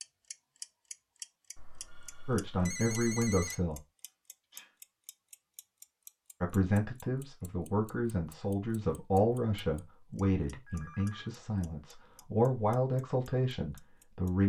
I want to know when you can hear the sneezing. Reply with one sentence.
You can hear the sneezing from 4.0 to 4.8 s.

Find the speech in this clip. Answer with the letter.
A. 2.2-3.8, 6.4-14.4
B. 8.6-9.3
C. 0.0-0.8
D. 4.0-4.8
A.